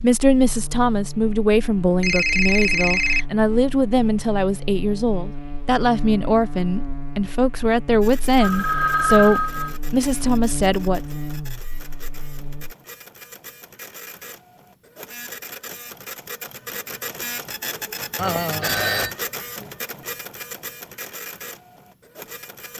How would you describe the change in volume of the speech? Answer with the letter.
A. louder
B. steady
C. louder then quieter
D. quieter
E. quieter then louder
B.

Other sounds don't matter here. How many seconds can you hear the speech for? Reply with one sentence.
You can hear the speech for 11 seconds altogether.